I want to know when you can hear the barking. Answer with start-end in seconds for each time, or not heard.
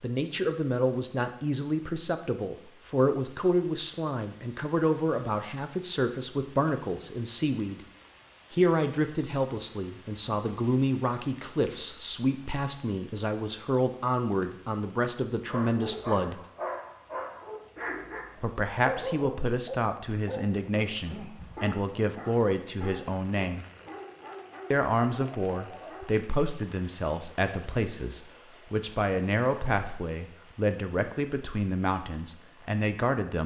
15.4-26.1.